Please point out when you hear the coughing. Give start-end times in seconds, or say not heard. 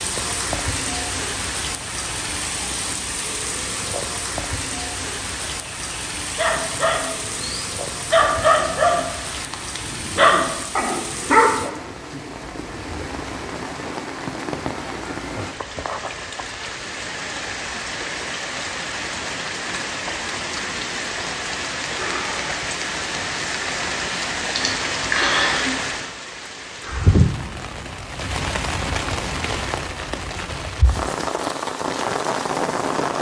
24.6-25.9.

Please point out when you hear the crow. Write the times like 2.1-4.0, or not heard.
not heard.